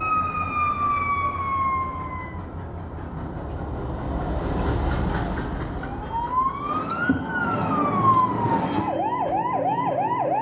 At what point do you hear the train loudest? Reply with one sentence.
The volume of the train peaks at 5 seconds.